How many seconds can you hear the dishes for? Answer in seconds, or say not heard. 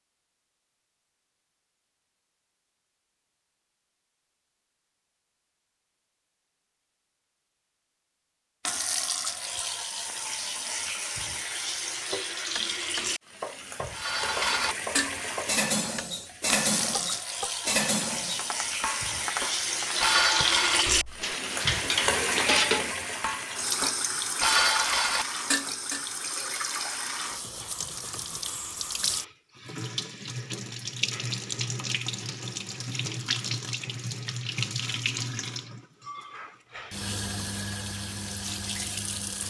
12 s.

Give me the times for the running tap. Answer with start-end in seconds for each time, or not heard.
8.7-39.4.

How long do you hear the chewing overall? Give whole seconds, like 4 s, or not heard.
not heard.